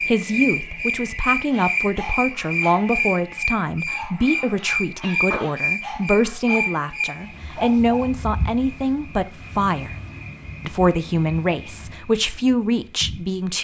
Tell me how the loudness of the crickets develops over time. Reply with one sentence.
The loudness of the crickets goes down.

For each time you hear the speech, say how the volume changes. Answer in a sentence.
The speech can be heard from 0.1 to 9.9 s, at a steady volume; and briefly from 10.7 to 13.5 s.